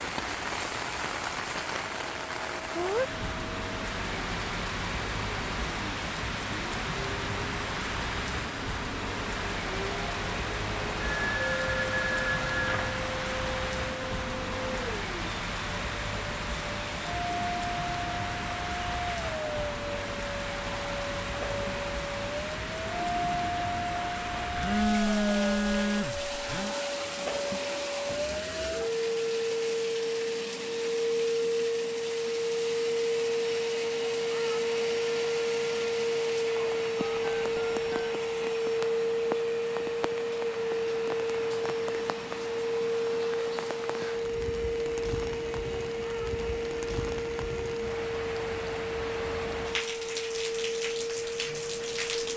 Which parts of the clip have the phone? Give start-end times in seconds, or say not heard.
11.0-13.0, 24.6-26.8, 37.0-38.1.